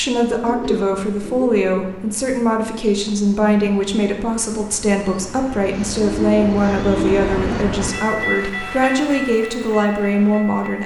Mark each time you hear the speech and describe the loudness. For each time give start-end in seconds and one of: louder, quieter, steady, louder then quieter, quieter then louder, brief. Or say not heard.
0.0-10.8 steady.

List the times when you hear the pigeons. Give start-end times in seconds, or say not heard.
0.4-1.9, 5.6-7.7.